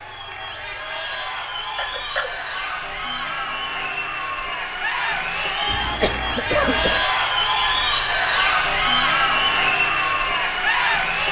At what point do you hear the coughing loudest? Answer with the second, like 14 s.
7 s.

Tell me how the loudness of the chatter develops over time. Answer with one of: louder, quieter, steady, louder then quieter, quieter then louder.
louder.